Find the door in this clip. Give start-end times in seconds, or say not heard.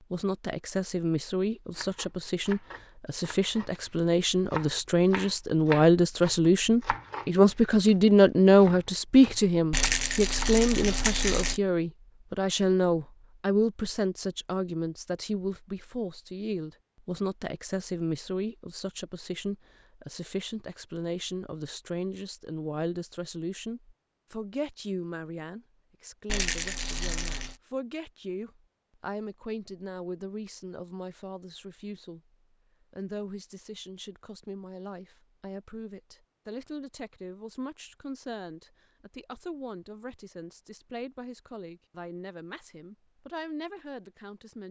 not heard.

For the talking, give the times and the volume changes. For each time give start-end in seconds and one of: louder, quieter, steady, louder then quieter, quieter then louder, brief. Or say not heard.
0.1-44.6 quieter.